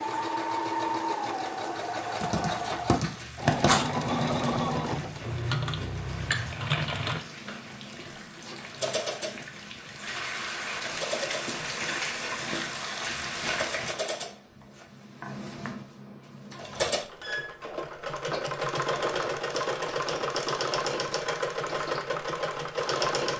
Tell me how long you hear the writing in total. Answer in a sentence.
The writing can be heard for 2 seconds in total.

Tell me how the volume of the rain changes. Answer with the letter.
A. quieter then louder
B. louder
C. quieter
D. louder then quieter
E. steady
B.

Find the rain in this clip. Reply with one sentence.
You can hear the rain from 0.0 to 13.9 s.